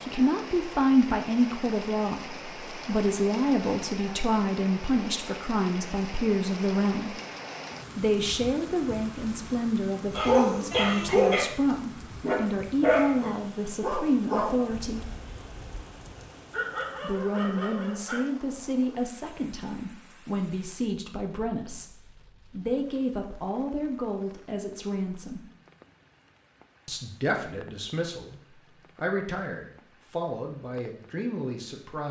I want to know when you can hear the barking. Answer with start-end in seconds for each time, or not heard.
10.1-18.6.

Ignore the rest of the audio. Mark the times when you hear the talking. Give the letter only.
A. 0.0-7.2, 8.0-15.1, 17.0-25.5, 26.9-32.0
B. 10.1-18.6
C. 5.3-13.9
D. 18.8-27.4
A.